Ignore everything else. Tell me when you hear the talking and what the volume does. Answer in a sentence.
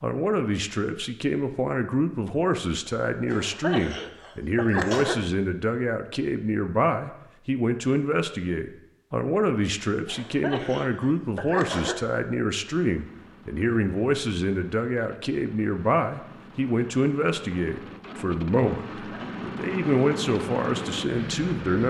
You can hear the talking from 0.0 to 21.8 s, at a steady volume.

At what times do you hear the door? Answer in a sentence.
The door can't be heard in this clip.